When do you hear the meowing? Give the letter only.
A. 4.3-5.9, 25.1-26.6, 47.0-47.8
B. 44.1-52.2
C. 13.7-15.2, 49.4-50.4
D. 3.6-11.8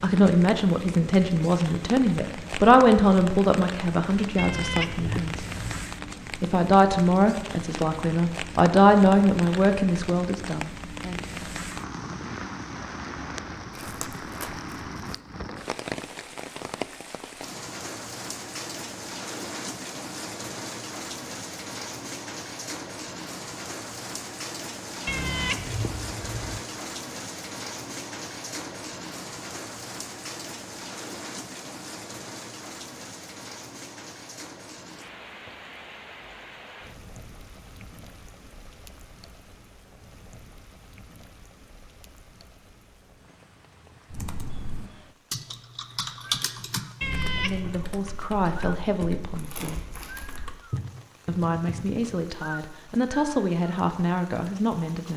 A.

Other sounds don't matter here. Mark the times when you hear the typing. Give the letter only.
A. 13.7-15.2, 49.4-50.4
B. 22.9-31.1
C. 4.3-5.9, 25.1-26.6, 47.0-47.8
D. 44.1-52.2
D.